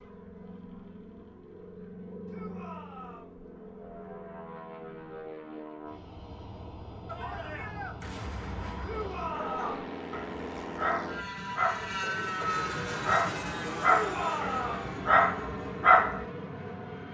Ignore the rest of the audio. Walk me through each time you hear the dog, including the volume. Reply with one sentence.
You can hear the dog from 9.2 to 16.2 s, getting louder.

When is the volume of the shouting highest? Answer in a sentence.
The volume of the shouting peaks at 14 seconds.